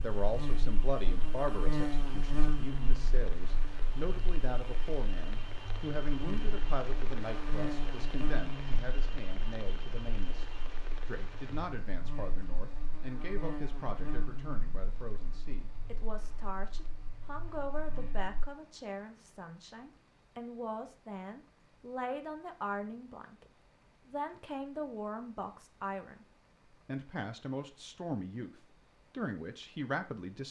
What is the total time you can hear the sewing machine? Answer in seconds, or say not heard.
not heard.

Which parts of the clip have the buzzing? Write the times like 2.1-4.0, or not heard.
0.0-18.4.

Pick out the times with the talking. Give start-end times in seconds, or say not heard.
0.0-30.4.